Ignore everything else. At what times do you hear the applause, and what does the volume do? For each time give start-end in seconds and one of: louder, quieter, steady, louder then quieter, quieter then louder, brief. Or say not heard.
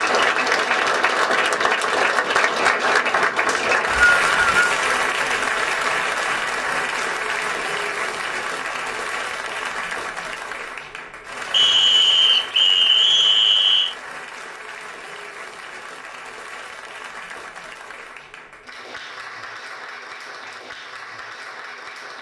0.0-22.1 quieter.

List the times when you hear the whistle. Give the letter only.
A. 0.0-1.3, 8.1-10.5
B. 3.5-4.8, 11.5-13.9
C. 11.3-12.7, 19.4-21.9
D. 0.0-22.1
B.